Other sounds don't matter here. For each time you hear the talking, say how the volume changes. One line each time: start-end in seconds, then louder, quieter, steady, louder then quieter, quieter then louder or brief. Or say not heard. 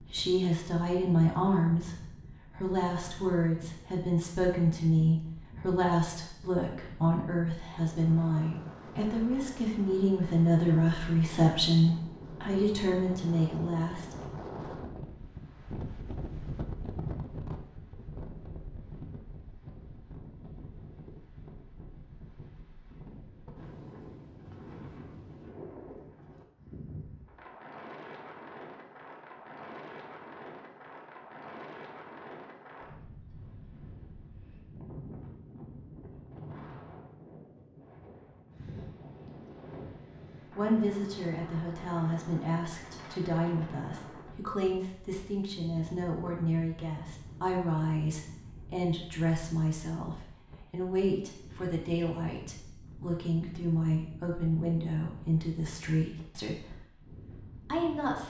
0.1-14.2 steady
40.5-58.2 steady.